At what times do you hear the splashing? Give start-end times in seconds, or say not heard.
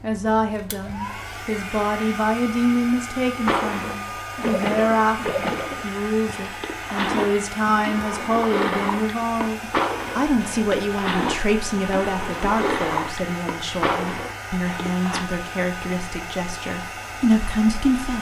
3.5-15.2.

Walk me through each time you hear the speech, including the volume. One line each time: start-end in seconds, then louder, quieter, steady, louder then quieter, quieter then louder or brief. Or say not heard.
0.0-18.1 steady.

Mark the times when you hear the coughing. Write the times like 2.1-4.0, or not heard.
not heard.